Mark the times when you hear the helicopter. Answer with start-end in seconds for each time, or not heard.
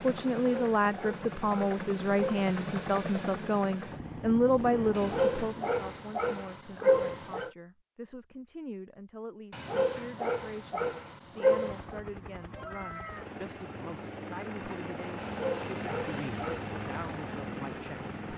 0.0-4.9, 11.6-18.3.